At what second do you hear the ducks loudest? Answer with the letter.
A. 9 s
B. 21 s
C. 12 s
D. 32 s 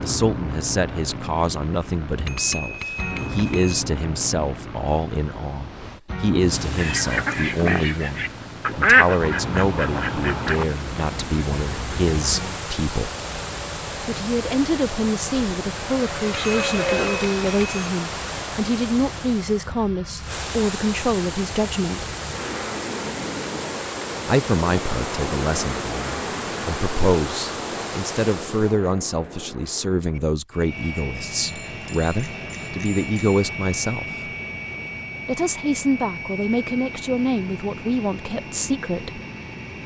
A.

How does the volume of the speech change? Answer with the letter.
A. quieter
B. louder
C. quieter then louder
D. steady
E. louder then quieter
D.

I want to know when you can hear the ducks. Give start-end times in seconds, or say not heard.
6.8-12.3.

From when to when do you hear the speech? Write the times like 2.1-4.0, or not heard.
0.0-13.1, 14.1-22.1, 24.2-34.0, 35.2-39.2.